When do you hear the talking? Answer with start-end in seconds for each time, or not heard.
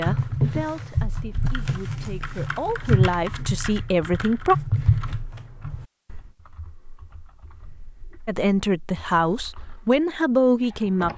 0.0-4.5, 8.2-11.1.